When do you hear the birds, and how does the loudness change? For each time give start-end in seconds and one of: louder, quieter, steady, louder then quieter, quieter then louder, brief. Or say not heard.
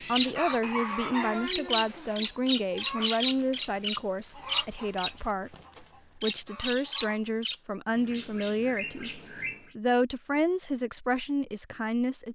0.0-9.8 quieter.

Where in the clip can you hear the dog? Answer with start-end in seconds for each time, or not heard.
0.6-2.2.